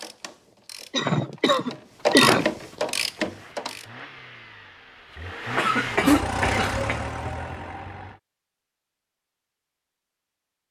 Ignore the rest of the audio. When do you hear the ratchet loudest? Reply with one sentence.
The loudest moment of the ratchet is at 2 seconds.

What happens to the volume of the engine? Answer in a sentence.
The loudness of the engine goes up, then down.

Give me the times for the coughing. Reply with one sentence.
You can hear the coughing from 0.9 to 2.5 s and from 5.5 to 7.0 s.